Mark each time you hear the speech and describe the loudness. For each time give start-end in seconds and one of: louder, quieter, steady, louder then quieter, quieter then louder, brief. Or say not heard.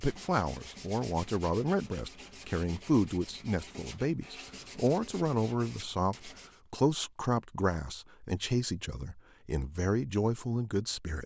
0.0-11.2 steady.